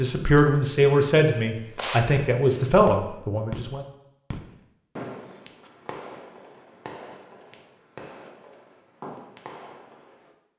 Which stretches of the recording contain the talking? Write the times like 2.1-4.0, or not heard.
0.0-3.9.